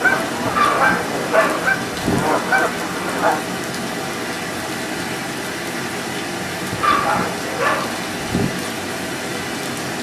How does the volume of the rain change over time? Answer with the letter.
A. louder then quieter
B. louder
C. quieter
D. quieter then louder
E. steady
E.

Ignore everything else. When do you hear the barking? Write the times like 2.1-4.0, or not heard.
0.5-2.2, 6.7-8.5.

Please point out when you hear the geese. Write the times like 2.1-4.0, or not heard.
0.0-3.4.